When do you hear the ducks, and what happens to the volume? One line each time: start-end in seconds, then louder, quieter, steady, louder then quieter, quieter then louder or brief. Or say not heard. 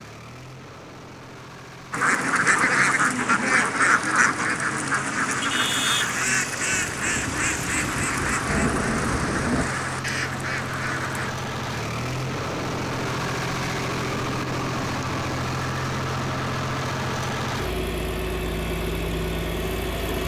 1.9-11.3 quieter.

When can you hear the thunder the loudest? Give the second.
9 s.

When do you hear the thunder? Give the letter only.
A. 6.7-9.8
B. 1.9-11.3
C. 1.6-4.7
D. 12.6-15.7
A.